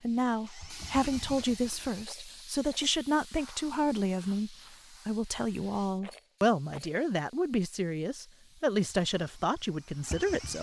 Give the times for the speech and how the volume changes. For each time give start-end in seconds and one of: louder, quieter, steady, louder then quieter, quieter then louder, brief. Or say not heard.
0.0-10.5 steady.